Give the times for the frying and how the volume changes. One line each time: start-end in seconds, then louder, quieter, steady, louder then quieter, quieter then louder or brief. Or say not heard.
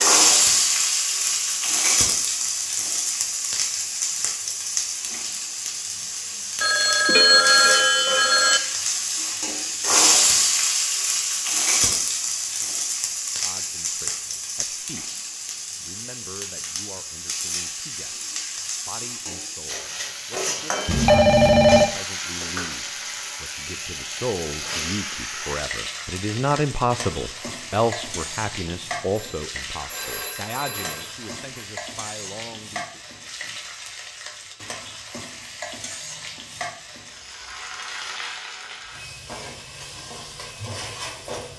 0.0-41.5 quieter.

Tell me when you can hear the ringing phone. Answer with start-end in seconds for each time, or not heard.
6.6-8.6, 20.9-21.9, 29.1-31.6.